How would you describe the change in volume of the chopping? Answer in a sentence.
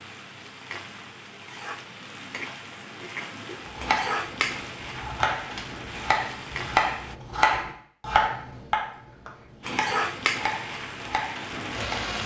The volume of the chopping goes up, then down.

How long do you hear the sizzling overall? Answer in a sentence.
The sizzling can be heard for 10 seconds in total.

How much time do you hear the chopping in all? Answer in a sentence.
The chopping can be heard for 8 seconds in total.